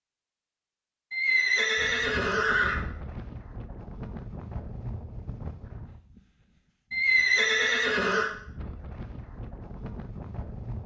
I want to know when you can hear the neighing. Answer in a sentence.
You can hear the neighing from 1.1 to 2.8 s and from 6.9 to 8.3 s.